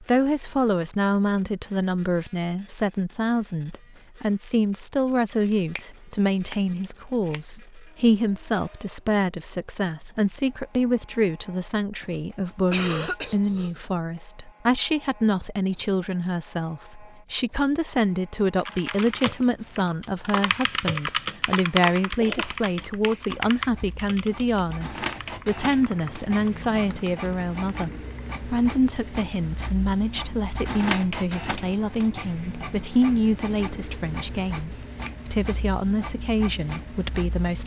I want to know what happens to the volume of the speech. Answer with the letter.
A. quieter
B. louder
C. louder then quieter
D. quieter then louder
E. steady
E.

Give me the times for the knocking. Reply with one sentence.
You can't hear the knocking here.